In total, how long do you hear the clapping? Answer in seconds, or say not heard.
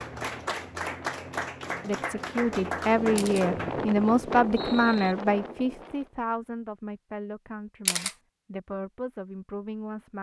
4 s.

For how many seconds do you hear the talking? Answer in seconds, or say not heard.
8 s.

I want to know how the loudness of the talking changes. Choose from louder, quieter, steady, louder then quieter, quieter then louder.
quieter.